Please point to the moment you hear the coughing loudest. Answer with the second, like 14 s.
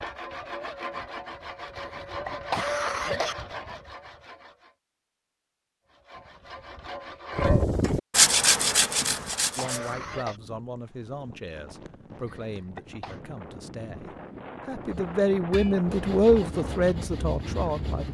3 s.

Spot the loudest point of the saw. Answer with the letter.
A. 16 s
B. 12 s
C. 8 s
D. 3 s
C.